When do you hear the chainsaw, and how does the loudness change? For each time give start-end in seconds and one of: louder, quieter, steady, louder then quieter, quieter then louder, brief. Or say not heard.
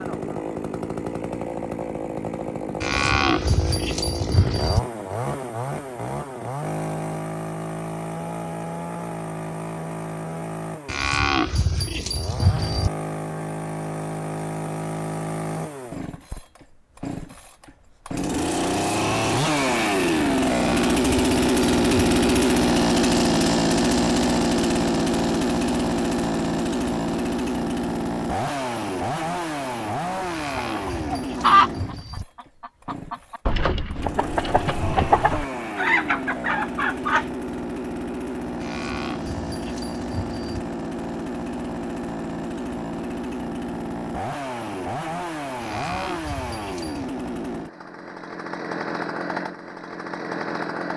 0.0-50.9 louder then quieter.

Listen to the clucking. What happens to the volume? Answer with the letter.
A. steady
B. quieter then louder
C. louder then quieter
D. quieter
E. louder
B.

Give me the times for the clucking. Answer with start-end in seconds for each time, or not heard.
30.6-37.2.